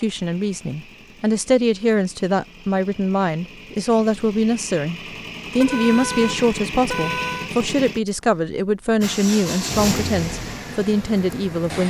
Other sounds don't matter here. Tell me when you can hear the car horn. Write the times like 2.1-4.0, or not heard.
5.5-7.5.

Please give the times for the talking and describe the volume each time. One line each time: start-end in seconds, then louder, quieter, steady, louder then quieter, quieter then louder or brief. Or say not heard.
0.0-11.8 steady.